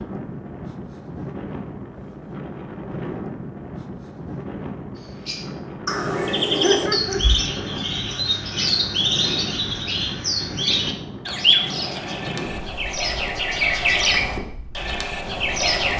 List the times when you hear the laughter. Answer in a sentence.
You can hear the laughter from 6.6 to 7.2 s.